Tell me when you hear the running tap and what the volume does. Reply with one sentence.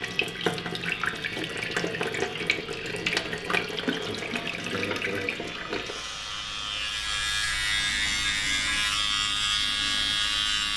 The running tap can be heard from 0.0 to 10.7 s, getting quieter.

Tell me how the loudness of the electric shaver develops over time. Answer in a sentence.
The volume of the electric shaver goes up.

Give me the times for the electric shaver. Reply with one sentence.
The electric shaver can be heard from 0.0 to 10.7 s.